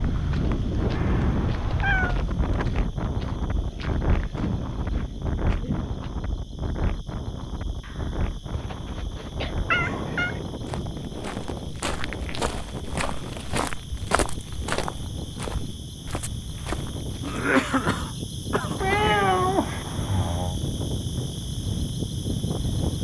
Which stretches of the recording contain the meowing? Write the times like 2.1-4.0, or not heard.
0.9-2.2, 9.7-10.4, 18.8-20.6.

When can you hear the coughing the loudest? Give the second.
18 s.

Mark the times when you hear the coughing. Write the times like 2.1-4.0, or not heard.
4.3-6.0, 7.8-9.6, 17.2-19.2.